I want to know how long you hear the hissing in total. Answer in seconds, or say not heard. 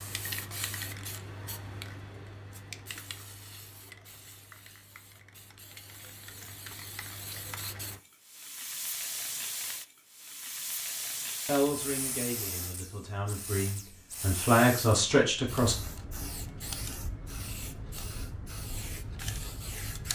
20 s.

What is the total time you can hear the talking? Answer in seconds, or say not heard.
4 s.